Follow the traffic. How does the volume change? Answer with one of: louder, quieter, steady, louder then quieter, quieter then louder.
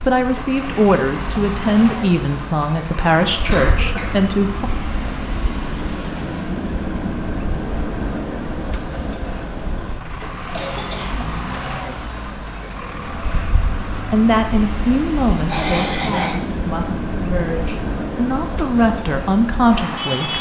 steady.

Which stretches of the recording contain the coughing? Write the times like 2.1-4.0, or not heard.
3.5-4.2, 9.6-11.3, 15.4-16.4.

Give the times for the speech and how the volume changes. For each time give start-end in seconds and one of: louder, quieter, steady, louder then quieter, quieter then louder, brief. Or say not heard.
0.1-4.7 steady
13.9-20.3 quieter then louder.